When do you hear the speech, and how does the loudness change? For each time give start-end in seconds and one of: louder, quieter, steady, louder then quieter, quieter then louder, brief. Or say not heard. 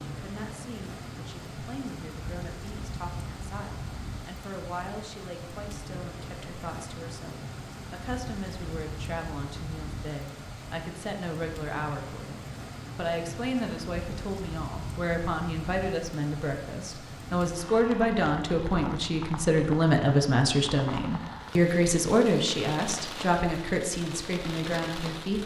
0.1-25.4 louder.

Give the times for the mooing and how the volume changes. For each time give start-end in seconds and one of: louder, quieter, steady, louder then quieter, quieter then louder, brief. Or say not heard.
not heard.